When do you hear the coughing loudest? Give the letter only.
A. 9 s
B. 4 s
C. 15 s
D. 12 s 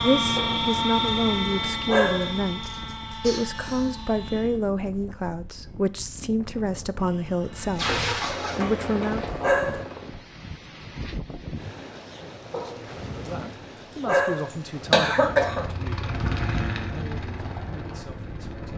C.